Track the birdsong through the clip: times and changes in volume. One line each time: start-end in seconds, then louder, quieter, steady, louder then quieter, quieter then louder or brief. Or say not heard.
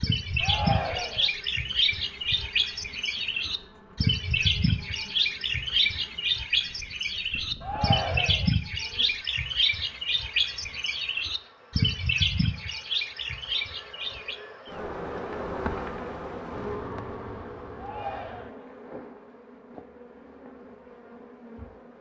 0.0-14.4 steady.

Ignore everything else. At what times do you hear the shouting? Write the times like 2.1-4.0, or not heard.
0.4-1.3, 7.6-8.5, 17.8-18.6.